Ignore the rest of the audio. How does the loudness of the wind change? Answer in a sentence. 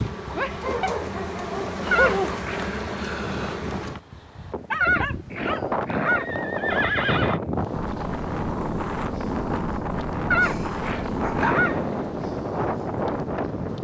The volume of the wind goes up.